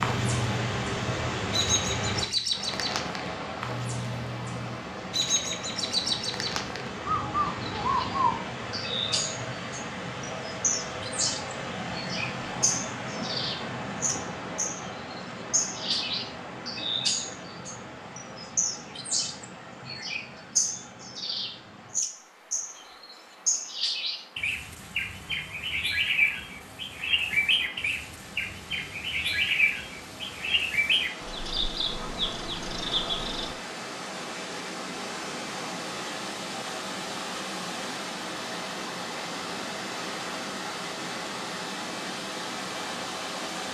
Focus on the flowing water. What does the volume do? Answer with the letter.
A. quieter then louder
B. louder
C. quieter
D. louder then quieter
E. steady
A.